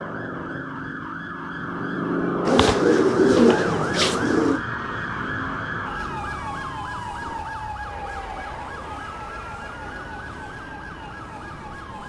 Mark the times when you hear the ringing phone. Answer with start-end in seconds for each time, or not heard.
not heard.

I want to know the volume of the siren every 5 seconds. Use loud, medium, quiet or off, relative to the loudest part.
loud, loud, medium.